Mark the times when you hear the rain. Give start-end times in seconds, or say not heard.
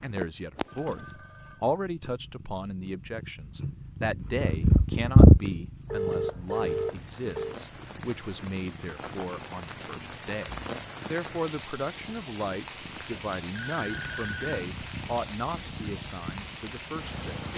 6.3-17.5.